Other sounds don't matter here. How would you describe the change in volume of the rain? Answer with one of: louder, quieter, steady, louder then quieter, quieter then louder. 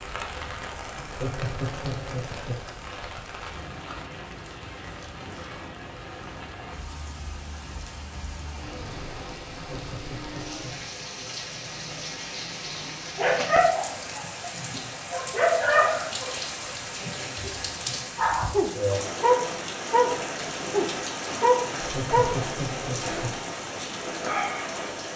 louder.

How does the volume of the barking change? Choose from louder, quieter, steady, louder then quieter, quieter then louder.
quieter then louder.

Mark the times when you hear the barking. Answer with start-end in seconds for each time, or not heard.
13.2-16.4, 17.0-22.4.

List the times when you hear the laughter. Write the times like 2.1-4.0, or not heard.
0.9-2.6, 9.6-10.8, 21.8-23.4.